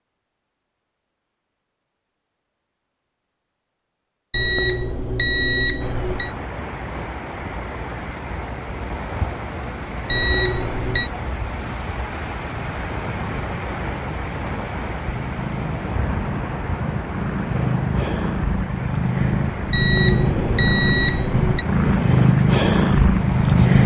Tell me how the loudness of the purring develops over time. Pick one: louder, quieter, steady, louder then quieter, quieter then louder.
louder.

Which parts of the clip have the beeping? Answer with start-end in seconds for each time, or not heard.
4.3-6.3, 10.1-11.1, 19.7-21.6.